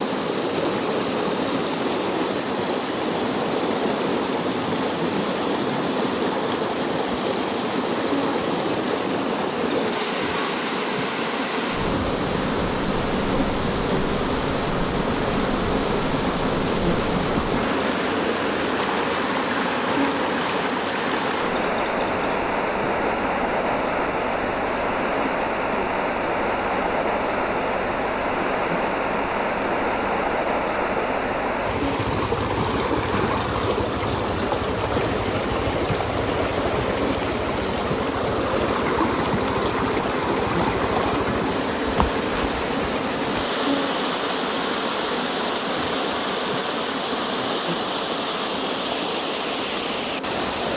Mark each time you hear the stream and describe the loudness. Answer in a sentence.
You can hear the stream from 0.0 to 50.7 s, at a steady volume.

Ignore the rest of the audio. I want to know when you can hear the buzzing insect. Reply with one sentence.
The buzzing insect can be heard from 0.0 to 50.7 s.